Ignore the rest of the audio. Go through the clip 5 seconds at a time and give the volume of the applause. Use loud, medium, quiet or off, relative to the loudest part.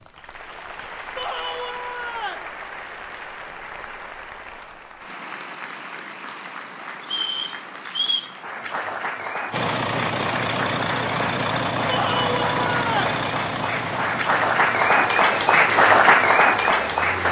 quiet, quiet, medium, loud.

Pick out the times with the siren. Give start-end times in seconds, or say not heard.
not heard.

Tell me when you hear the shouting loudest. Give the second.
12 s.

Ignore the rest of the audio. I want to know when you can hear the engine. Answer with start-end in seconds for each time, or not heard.
9.5-17.2.